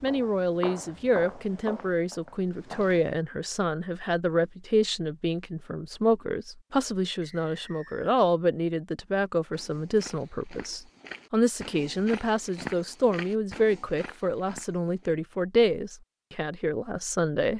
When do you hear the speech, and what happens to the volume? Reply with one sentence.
The speech can be heard from 0.0 to 17.5 s, at a steady volume.